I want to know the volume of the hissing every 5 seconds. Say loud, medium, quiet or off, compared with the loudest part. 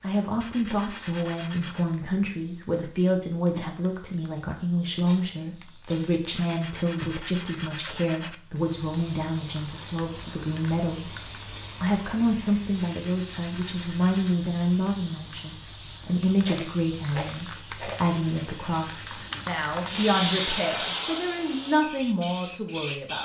quiet, quiet, medium, medium, loud.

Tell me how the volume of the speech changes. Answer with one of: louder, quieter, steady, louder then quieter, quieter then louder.
steady.